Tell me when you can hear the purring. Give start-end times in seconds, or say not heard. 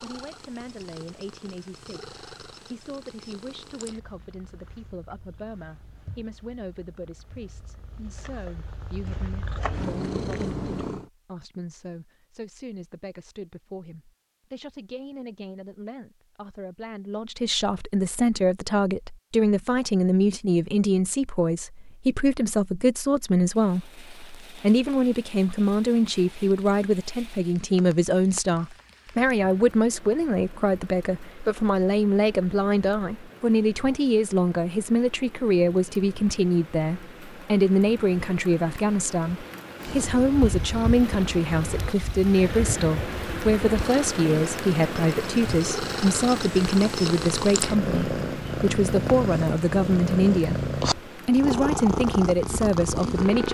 0.0-11.1, 39.8-53.4.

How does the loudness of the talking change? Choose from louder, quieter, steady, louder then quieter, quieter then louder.
louder.